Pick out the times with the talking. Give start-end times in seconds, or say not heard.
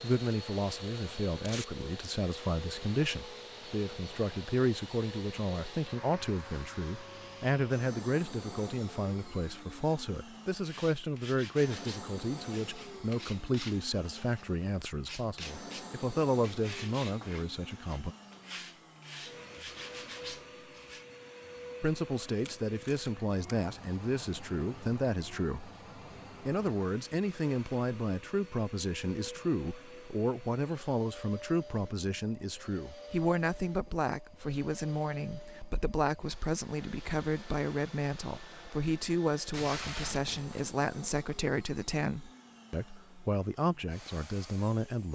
0.0-18.1, 21.8-25.7, 26.4-45.1.